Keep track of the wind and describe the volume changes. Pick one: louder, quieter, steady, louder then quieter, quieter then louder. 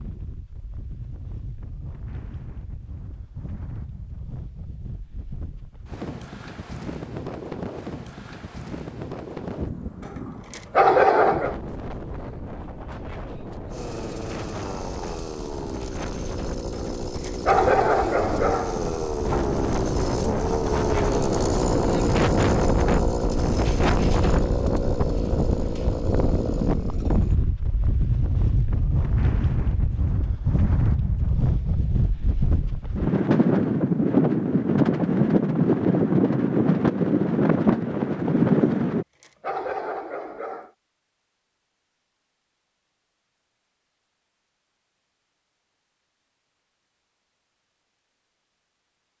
louder.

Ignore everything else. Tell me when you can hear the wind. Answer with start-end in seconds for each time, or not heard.
0.0-39.0.